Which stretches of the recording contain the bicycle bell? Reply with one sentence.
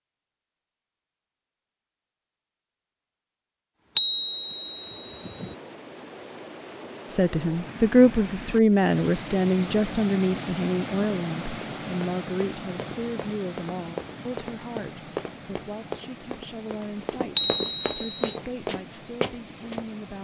The bicycle bell can be heard from 4.0 to 5.5 s and from 17.4 to 18.3 s.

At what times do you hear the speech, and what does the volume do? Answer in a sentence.
The speech can be heard from 7.0 to 20.1 s, getting quieter.